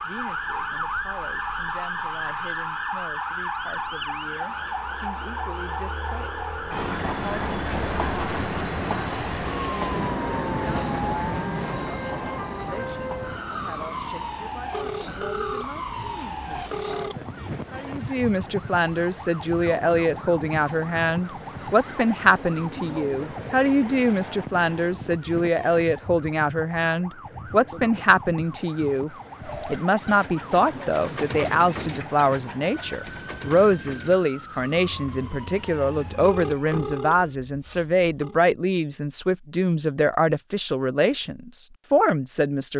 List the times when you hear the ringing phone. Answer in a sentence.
You can hear the ringing phone from 14.7 to 17.1 s and from 36.2 to 38.4 s.